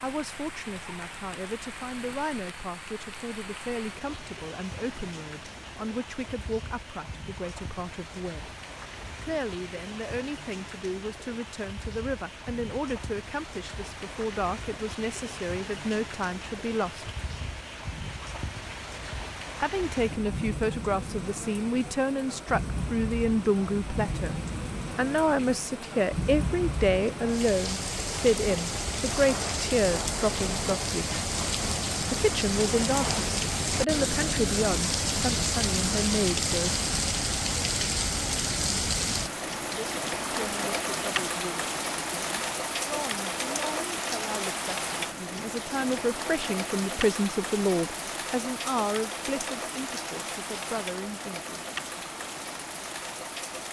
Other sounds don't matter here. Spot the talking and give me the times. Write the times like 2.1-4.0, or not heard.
0.0-8.5, 9.2-17.1, 19.6-31.1, 32.1-36.8, 39.7-51.5.